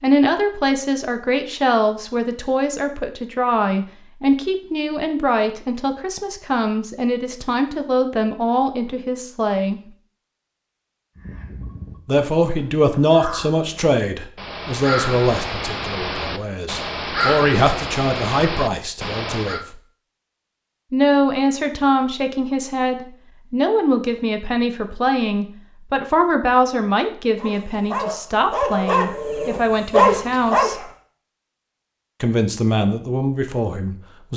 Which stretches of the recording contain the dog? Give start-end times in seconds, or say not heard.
27.4-30.9.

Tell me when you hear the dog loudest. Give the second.
30 s.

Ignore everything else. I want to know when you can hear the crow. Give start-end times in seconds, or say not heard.
11.2-19.6.